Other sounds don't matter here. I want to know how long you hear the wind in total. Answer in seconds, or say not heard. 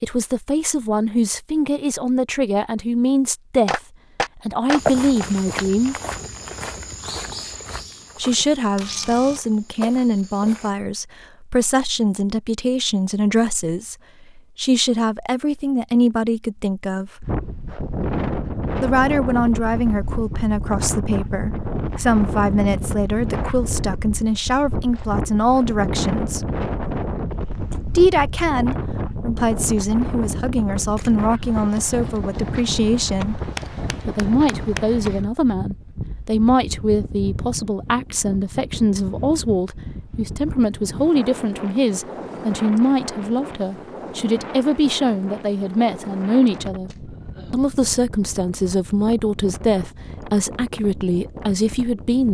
35 s.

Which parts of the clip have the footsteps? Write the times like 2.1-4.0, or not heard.
4.8-10.8.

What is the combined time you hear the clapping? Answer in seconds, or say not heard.
3 s.